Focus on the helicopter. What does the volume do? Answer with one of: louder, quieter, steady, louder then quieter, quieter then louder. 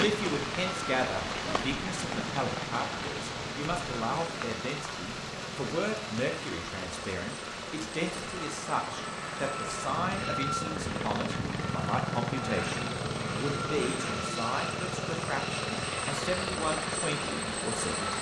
louder.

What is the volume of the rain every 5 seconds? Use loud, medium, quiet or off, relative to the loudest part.
loud, medium, medium, medium.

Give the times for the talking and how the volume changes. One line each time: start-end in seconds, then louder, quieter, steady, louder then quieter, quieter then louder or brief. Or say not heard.
0.0-18.1 steady.